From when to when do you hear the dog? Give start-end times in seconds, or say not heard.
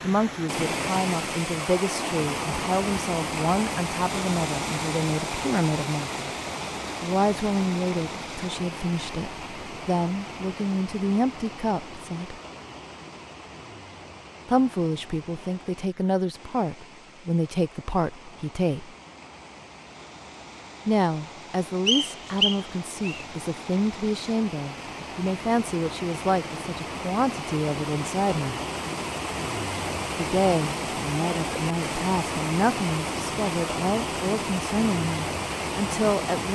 not heard.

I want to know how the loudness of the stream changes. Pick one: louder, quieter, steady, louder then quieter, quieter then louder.
quieter then louder.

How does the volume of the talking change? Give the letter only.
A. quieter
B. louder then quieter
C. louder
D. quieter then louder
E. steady
E.